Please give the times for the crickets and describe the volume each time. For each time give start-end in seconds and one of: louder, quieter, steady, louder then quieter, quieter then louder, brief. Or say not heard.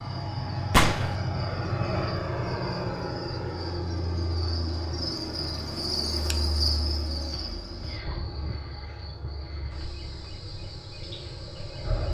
0.0-12.0 louder then quieter.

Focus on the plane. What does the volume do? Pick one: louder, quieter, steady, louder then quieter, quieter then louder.
quieter.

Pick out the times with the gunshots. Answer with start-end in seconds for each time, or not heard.
0.7-1.1.